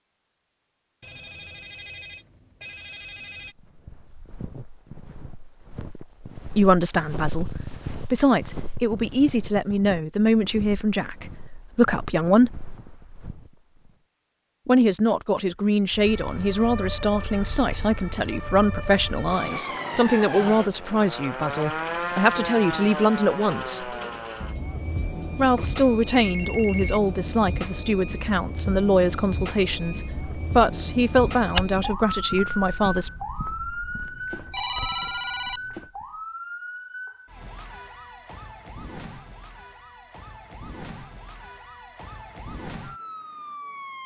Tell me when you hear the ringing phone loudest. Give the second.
35 s.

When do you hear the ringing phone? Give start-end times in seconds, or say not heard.
1.0-3.5, 25.6-27.0, 34.0-35.9.